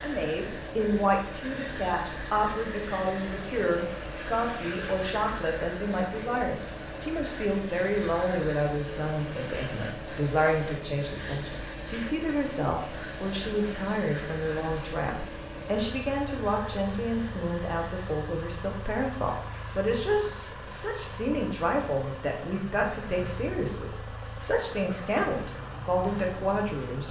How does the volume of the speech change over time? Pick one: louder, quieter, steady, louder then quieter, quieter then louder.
steady.